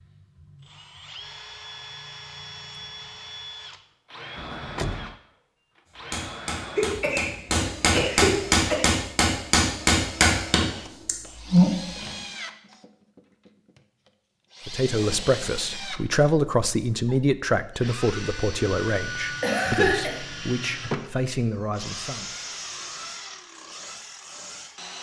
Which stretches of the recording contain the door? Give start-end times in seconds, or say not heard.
4.3-5.2.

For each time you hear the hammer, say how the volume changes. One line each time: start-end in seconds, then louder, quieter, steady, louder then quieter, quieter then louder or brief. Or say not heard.
6.1-12.1 louder.